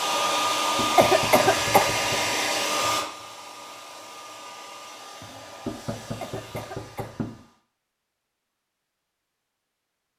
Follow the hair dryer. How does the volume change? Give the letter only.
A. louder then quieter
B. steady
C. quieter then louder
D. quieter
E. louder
D.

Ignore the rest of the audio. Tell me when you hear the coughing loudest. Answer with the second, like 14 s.
1 s.